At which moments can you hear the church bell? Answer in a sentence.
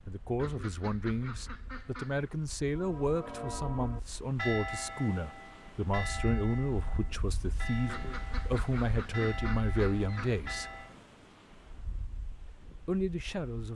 The church bell can be heard from 2.8 to 10.9 s.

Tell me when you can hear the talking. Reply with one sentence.
You can hear the talking from 0.1 to 10.8 s and from 12.7 to 13.7 s.